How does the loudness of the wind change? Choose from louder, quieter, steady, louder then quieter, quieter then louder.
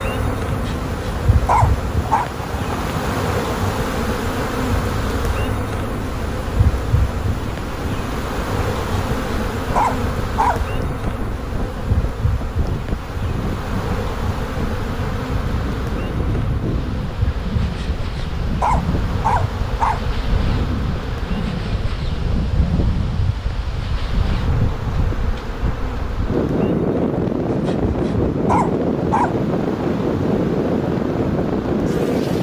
louder.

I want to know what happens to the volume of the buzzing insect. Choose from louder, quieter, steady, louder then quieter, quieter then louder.
quieter.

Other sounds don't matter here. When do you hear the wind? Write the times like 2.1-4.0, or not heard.
0.1-32.3.